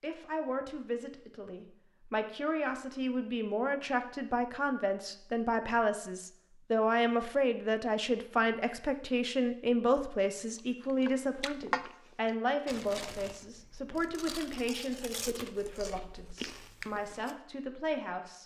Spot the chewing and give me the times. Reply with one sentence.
You can hear the chewing from 10.6 to 17.4 s.